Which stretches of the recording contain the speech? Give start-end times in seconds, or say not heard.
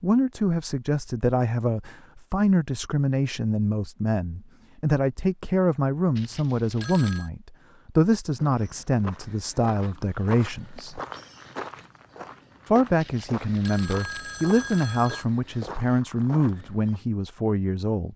0.0-11.0, 12.7-18.1.